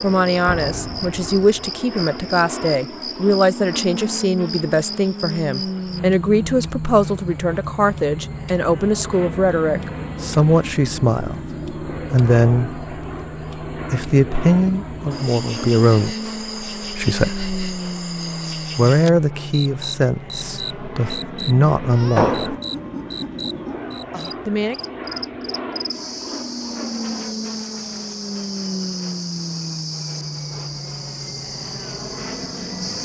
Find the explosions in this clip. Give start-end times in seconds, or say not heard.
0.5-1.7, 22.1-22.6.